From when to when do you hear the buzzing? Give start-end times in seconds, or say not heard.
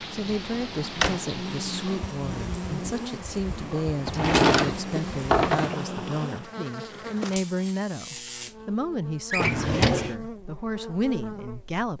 0.0-11.9.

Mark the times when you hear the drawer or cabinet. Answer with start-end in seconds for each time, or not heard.
0.2-1.2, 4.0-5.8, 9.3-10.2.